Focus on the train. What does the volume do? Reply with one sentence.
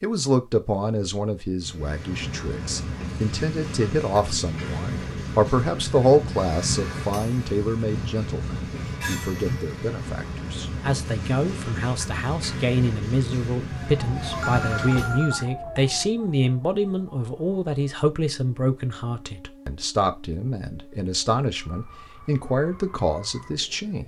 The volume of the train stays about the same.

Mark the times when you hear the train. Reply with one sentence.
The train can be heard from 1.6 to 15.3 s.